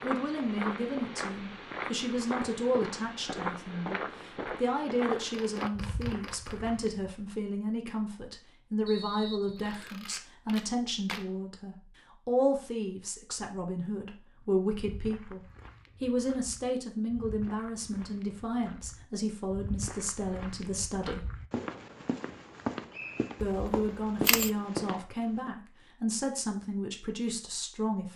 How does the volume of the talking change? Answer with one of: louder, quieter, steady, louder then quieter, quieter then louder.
steady.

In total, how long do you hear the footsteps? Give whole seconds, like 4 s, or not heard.
18 s.